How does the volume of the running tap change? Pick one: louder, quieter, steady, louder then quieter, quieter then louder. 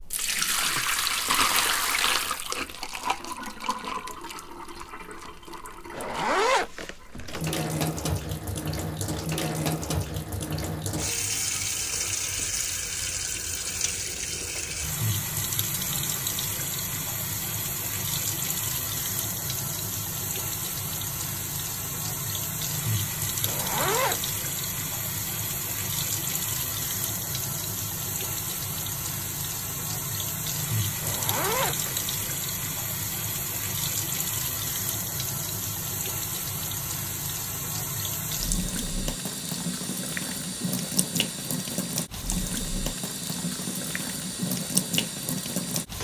steady.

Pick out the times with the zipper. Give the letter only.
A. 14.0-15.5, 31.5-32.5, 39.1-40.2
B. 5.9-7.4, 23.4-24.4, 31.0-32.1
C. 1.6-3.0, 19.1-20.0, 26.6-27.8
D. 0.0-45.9
B.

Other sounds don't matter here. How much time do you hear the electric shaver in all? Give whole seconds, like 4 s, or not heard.
not heard.